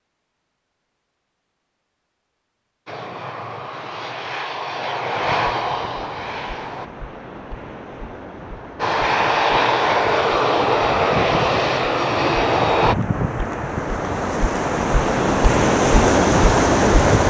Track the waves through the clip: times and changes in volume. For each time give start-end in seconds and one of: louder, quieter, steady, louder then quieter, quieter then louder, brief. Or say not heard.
5.1-17.2 louder.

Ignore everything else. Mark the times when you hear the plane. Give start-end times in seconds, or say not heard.
2.9-6.9, 8.8-12.9.